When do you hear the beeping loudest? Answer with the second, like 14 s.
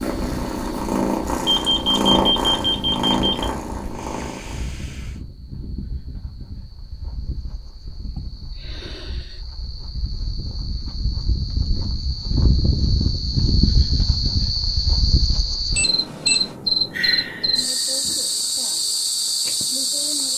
2 s.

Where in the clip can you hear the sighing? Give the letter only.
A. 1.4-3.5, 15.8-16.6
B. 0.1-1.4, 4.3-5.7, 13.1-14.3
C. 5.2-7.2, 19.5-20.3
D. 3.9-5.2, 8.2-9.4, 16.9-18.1
D.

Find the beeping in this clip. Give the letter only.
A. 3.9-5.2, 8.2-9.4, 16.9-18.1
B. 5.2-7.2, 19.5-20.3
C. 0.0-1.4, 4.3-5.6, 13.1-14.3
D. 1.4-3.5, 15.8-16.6
D.